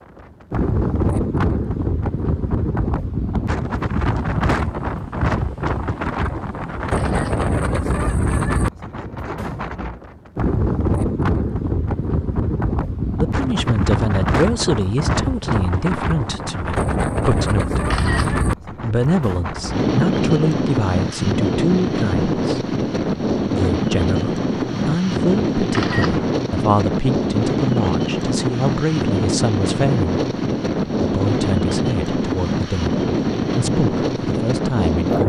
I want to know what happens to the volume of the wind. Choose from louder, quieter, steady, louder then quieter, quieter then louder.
steady.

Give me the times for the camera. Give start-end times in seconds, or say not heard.
6.9-7.5, 17.9-18.4, 25.7-26.3.